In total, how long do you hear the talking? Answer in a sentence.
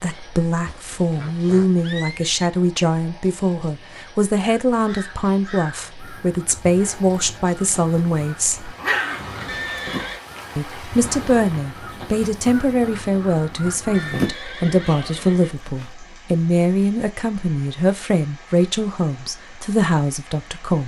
You can hear the talking for 19 seconds altogether.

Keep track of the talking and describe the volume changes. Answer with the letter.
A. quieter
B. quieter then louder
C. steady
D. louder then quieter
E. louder
C.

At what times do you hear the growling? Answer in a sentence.
You can hear the growling from 8.8 to 10.1 s.